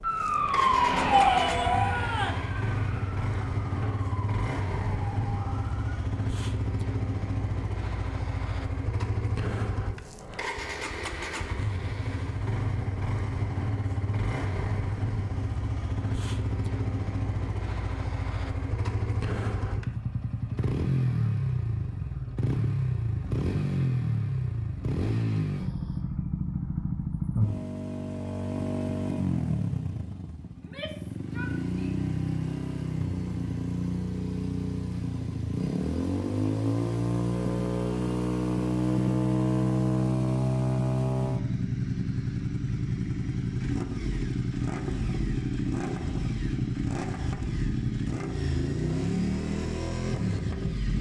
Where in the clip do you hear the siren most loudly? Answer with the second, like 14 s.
1 s.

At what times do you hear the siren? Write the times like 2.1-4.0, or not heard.
0.0-6.0.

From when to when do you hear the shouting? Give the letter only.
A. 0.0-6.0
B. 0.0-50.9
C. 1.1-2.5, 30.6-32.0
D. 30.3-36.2
C.